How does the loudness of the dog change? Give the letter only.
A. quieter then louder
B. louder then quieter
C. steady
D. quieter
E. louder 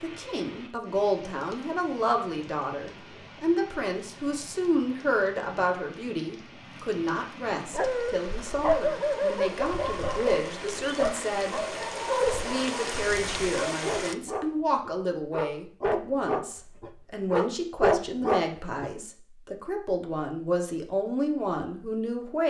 A.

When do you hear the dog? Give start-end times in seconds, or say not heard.
7.7-18.9.